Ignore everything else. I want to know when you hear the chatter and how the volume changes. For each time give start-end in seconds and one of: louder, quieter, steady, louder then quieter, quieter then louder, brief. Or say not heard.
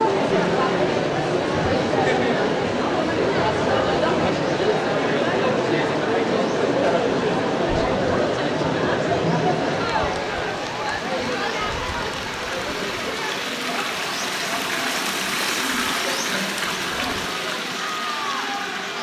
0.0-18.9 quieter.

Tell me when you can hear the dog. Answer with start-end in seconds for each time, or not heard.
not heard.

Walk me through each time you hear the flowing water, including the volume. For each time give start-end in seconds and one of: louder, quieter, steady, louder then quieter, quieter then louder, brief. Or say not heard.
0.1-18.9 louder.